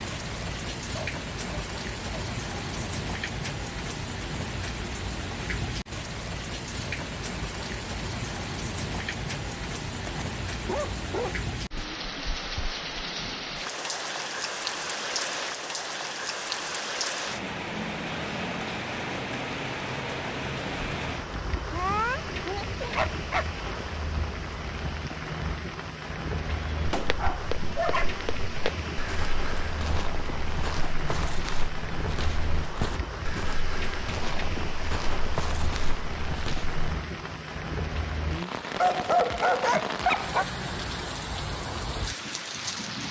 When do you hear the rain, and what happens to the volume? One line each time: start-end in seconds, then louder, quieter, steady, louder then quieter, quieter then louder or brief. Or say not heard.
0.0-43.0 steady.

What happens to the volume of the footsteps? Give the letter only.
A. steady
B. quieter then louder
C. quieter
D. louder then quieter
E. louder
A.